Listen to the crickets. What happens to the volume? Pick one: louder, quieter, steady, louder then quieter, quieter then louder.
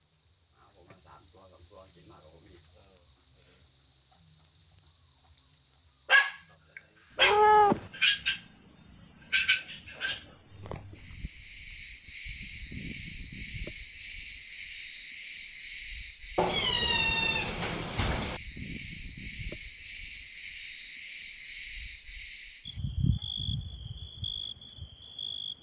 steady.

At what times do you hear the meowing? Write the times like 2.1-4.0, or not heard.
7.2-7.8, 16.4-18.4.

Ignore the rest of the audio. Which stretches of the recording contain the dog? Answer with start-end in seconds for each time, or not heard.
6.0-7.4.